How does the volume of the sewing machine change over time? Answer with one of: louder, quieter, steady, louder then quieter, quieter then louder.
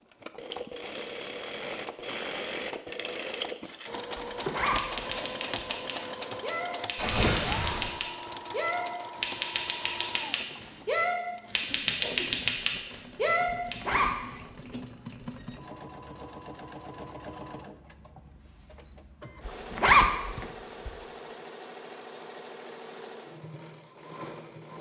quieter.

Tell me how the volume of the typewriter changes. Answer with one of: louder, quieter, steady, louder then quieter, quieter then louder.
louder.